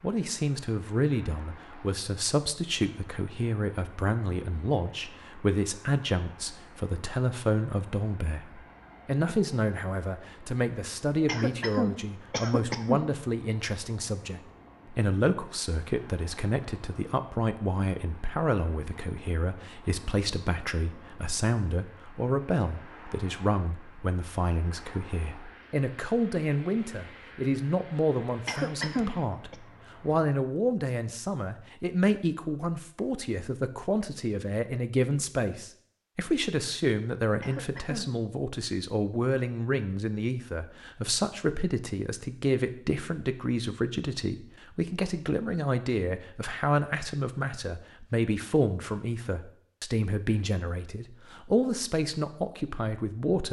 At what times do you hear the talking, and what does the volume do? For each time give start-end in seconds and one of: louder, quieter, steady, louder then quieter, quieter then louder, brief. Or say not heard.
0.0-53.4 steady.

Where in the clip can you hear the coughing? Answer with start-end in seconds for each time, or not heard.
11.2-13.1, 28.4-29.6, 37.4-38.0.